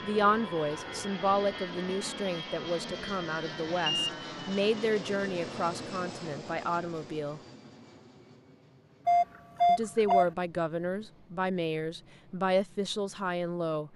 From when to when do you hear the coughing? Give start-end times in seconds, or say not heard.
not heard.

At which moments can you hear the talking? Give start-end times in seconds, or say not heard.
0.0-7.4, 9.7-13.9.